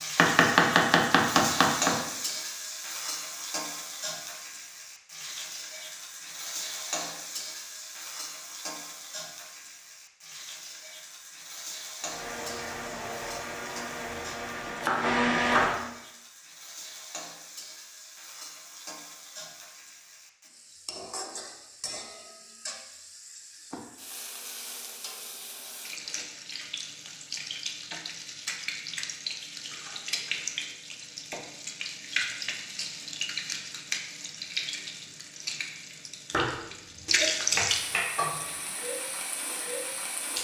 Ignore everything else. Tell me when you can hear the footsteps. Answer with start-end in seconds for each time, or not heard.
not heard.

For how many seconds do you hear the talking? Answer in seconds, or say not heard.
not heard.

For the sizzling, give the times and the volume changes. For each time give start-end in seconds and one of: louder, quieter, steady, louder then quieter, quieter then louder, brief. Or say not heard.
0.0-40.3 quieter then louder.